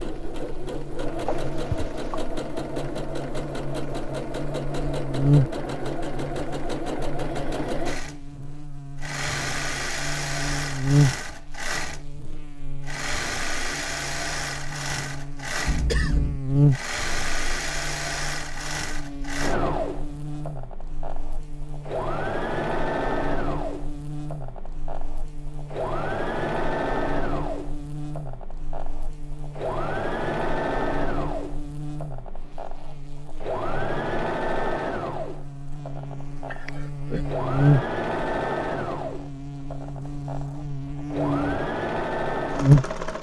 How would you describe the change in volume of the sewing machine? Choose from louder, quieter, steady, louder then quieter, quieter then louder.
steady.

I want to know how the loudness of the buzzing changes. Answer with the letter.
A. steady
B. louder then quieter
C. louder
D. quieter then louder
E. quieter
D.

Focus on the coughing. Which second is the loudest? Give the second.
16 s.